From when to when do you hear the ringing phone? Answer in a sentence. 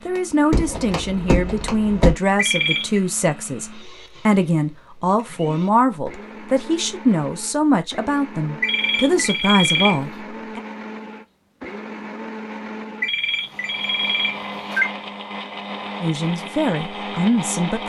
The ringing phone can be heard from 2.4 to 3.0 s, from 8.6 to 9.9 s and from 13.0 to 14.8 s.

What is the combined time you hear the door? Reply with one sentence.
You can hear the door for 2 seconds altogether.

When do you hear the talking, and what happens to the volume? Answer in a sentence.
You can hear the talking from 0.1 to 10.6 s, at a steady volume; and briefly from 16.0 to 17.8 s.